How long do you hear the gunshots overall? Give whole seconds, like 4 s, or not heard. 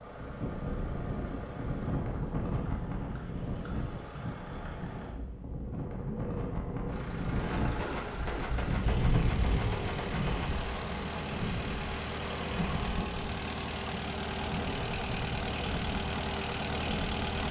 3 s.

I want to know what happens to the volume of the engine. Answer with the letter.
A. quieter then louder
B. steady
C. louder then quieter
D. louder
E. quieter
D.